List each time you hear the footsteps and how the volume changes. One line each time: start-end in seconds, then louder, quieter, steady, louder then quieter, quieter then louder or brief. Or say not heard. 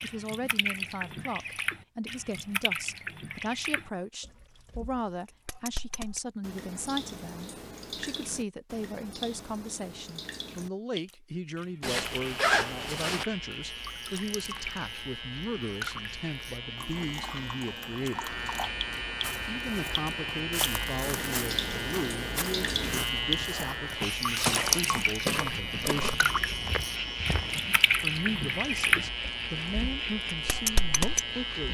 19.2-27.7 louder then quieter.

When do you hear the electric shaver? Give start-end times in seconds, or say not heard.
12.1-31.6.